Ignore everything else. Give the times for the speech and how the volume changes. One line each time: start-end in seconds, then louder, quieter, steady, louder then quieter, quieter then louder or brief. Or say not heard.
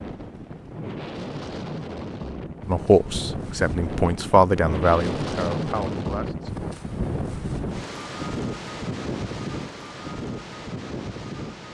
2.6-6.7 louder then quieter.